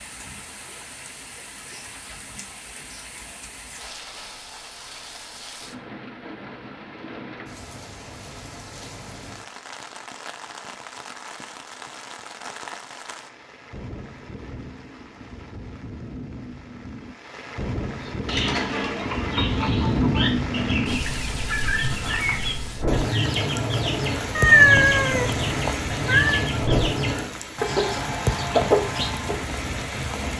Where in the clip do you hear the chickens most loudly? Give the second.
29 s.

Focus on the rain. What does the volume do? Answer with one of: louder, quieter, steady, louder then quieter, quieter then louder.
louder.